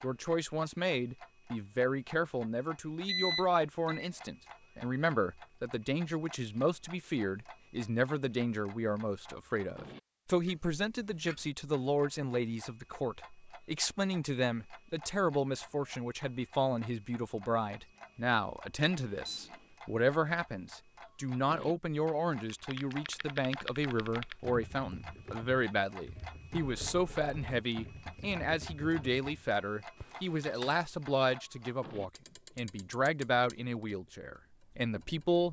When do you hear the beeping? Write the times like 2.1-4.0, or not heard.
3.0-4.1, 18.9-19.6, 26.6-27.6.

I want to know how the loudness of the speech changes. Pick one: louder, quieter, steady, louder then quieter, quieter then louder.
steady.